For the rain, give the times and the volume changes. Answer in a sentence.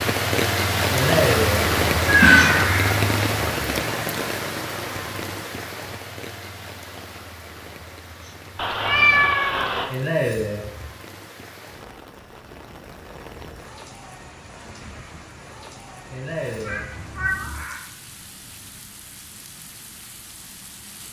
You can hear the rain from 0.0 to 21.0 s, getting quieter.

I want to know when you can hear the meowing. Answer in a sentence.
The meowing can be heard from 2.0 to 2.6 s, from 8.6 to 9.8 s and from 16.6 to 17.6 s.